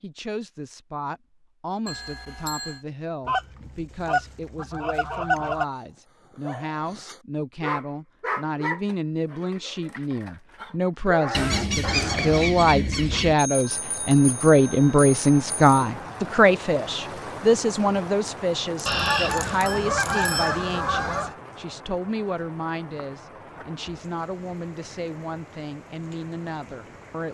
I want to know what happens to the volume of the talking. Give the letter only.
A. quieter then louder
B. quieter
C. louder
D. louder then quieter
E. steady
D.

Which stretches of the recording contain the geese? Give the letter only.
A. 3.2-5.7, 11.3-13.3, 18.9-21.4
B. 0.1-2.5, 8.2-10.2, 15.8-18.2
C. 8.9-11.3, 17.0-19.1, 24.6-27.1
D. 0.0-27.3
A.